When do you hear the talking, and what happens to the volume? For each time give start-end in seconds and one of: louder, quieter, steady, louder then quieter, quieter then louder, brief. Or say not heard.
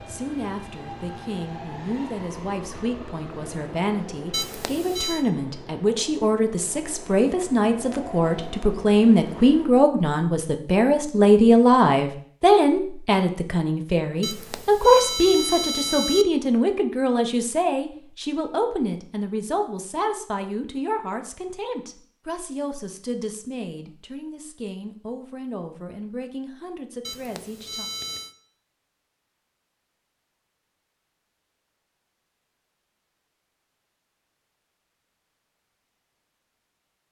0.1-27.9 louder then quieter.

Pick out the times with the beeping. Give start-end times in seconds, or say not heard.
4.3-5.2, 14.2-16.2, 27.0-28.4.